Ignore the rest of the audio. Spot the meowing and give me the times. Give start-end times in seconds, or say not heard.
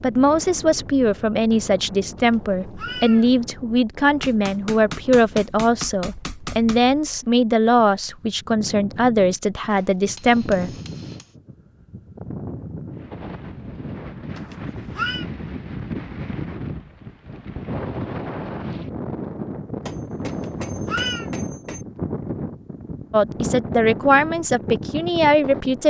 2.1-3.3, 14.3-15.2, 20.2-21.3.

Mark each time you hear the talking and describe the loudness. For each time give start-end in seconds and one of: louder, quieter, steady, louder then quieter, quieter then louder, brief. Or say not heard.
0.0-10.7 steady
23.1-25.8 brief.